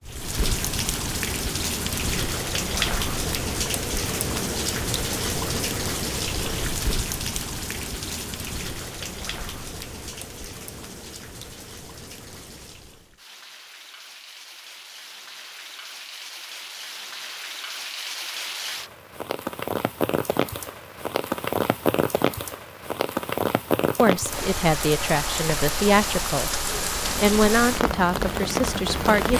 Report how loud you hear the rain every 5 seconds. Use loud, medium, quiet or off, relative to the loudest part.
loud, loud, quiet, medium, loud, loud.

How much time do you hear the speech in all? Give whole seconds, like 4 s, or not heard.
5 s.